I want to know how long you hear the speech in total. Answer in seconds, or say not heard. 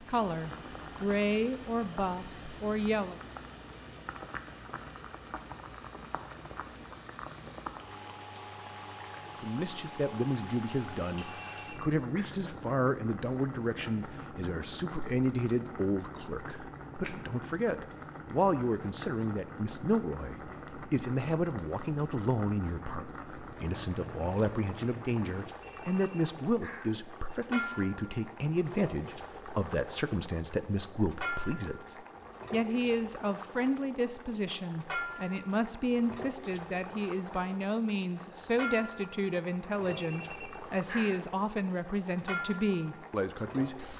38 s.